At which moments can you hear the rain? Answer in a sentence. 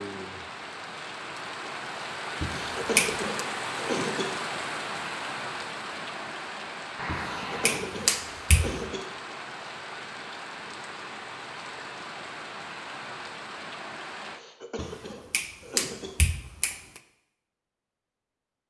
You can hear the rain from 0.0 to 14.4 s.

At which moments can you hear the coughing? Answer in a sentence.
You can hear the coughing from 2.6 to 4.4 s, from 7.4 to 9.2 s and from 14.2 to 16.2 s.